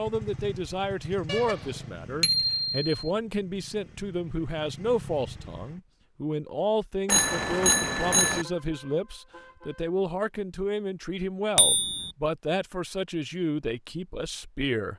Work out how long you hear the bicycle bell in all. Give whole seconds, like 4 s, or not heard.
3 s.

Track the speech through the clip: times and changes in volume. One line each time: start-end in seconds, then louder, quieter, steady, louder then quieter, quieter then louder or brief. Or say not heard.
0.0-14.9 steady.